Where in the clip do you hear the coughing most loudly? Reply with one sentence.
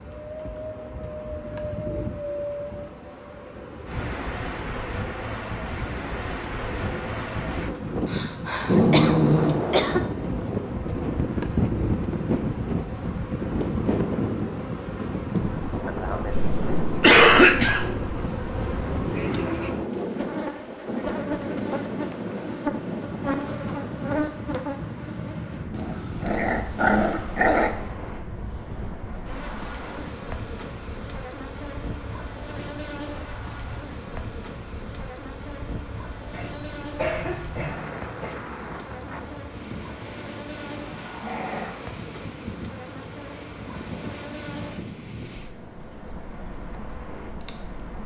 The loudest moment of the coughing is at 17 seconds.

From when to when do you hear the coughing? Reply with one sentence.
The coughing can be heard from 8.1 to 10.0 s, from 16.3 to 17.9 s and from 36.3 to 38.4 s.